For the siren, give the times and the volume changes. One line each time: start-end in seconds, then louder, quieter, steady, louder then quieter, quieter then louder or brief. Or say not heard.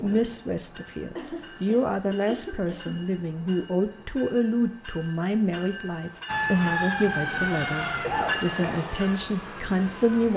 6.2-10.3 quieter.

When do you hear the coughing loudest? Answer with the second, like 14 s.
8 s.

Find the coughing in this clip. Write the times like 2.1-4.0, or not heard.
1.1-3.0, 8.0-8.8.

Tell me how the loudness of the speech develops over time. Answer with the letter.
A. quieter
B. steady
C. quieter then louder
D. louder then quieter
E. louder
B.